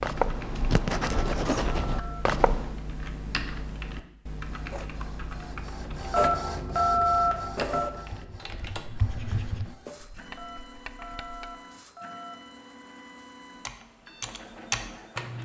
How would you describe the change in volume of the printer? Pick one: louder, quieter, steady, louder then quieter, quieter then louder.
quieter.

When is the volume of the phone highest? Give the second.
7 s.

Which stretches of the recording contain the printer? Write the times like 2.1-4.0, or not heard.
4.4-15.4.